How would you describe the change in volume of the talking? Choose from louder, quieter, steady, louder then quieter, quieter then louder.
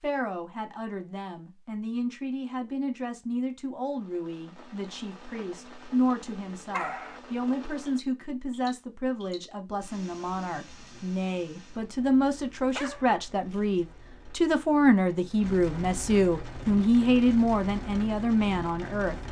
louder.